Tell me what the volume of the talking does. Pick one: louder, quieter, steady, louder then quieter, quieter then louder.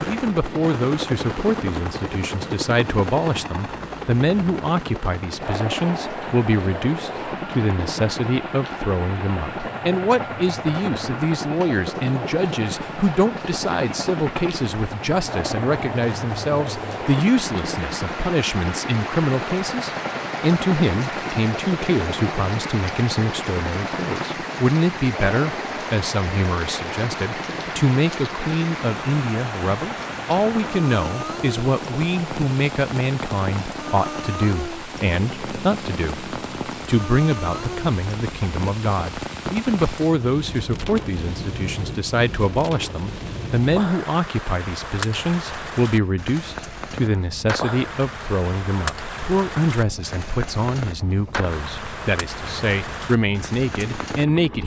steady.